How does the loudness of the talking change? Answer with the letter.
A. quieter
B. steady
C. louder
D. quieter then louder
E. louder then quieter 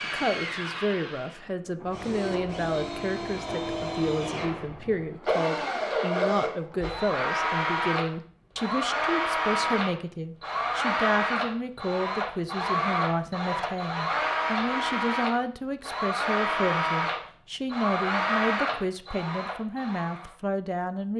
B.